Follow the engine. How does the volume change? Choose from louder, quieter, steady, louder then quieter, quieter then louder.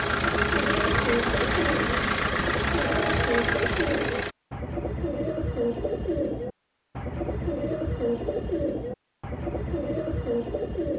steady.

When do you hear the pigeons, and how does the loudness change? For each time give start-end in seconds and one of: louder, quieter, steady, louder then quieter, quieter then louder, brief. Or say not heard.
0.0-10.9 steady.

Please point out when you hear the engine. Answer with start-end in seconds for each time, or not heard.
0.0-4.3.